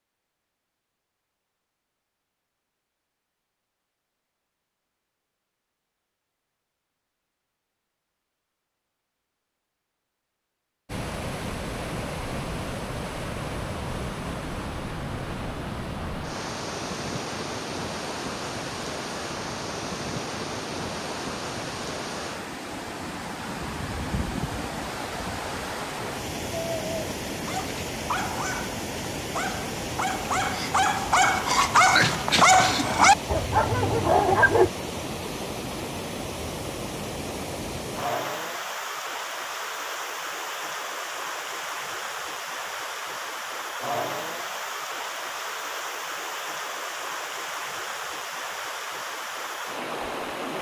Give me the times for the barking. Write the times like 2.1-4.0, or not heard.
26.5-34.7.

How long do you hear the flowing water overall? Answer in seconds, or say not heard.
40 s.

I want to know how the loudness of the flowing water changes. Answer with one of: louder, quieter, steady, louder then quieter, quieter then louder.
steady.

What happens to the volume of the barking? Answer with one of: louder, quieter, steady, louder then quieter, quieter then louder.
louder.